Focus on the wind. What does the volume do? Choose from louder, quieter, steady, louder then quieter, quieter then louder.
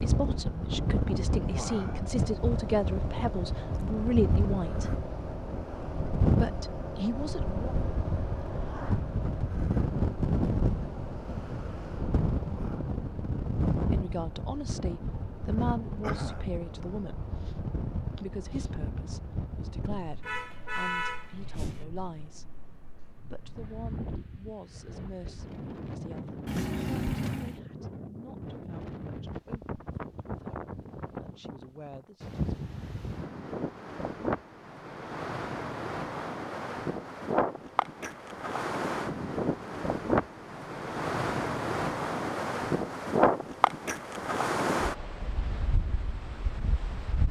quieter then louder.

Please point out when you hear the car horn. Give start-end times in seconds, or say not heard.
20.2-21.9, 26.4-27.6.